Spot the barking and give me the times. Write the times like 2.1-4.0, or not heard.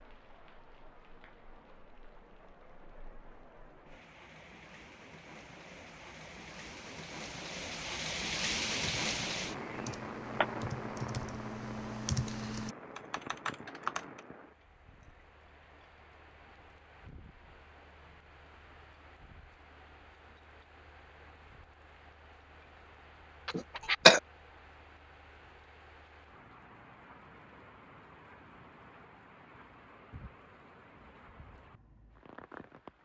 not heard.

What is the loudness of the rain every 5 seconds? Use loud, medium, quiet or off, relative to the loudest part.
quiet, loud, medium, quiet, quiet, quiet, quiet.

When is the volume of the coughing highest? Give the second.
24 s.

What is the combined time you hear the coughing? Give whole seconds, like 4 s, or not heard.
2 s.